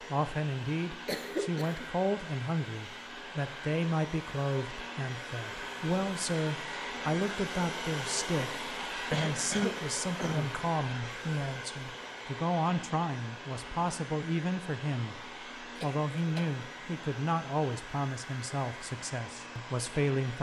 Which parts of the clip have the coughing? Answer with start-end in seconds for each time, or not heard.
1.1-1.9, 9.1-10.5, 15.8-16.5.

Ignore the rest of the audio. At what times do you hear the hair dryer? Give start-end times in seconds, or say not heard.
0.0-20.3.